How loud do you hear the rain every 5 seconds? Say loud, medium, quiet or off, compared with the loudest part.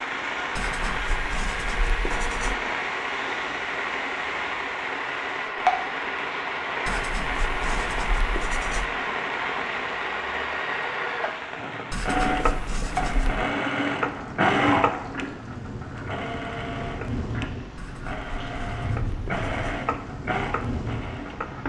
loud, loud, medium, medium, medium.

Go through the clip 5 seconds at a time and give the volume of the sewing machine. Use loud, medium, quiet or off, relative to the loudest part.
medium, medium, loud, medium, medium.